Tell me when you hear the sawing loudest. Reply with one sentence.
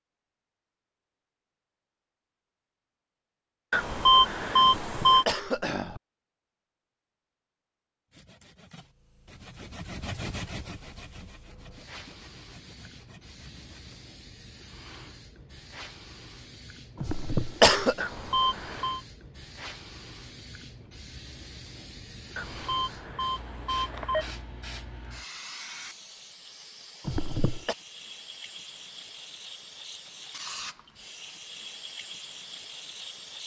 The volume of the sawing peaks at 10 seconds.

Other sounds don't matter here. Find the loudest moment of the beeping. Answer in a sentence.
The loudest moment of the beeping is at 4 seconds.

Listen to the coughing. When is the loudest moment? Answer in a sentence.
The volume of the coughing peaks at 18 seconds.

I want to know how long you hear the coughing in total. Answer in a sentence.
You can hear the coughing for 3 seconds altogether.